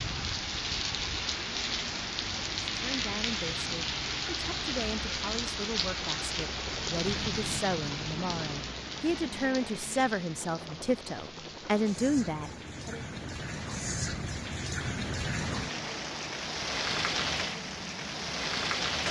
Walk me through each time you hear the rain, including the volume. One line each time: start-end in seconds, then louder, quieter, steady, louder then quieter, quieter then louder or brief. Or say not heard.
0.0-19.0 quieter then louder.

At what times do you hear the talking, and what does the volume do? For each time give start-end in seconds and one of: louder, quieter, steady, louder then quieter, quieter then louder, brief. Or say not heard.
2.8-13.1 louder.